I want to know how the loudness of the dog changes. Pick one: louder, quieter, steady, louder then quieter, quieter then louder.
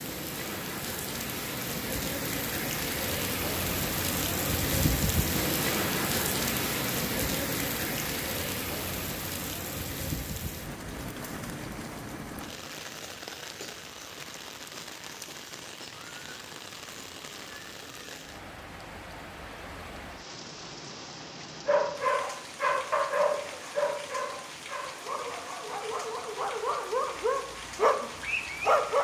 quieter then louder.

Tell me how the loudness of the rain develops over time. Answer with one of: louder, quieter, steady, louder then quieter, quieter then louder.
quieter.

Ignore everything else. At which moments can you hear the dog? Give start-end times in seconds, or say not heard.
21.6-28.9.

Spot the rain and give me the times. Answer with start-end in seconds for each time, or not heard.
0.0-28.9.